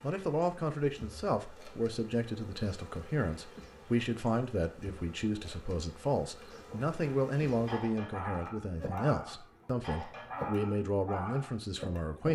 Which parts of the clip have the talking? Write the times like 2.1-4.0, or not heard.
0.0-12.3.